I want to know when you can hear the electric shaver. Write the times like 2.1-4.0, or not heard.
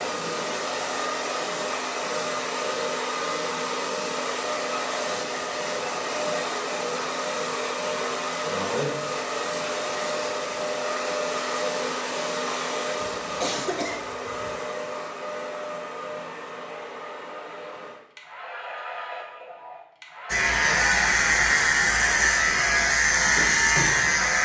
20.2-24.4.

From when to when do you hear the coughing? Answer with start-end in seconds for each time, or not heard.
13.0-14.6.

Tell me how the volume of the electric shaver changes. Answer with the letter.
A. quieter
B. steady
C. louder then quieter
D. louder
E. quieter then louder
B.